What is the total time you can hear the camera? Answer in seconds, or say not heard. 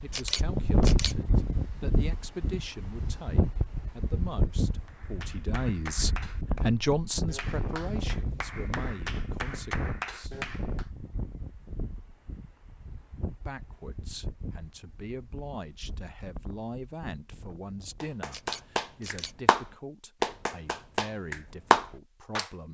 2 s.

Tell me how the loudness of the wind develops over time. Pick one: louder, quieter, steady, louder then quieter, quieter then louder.
quieter.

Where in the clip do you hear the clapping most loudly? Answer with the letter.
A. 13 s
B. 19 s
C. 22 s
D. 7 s
C.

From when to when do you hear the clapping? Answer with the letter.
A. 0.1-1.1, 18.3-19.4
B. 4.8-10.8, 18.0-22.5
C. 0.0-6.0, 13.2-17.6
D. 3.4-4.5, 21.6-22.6
B.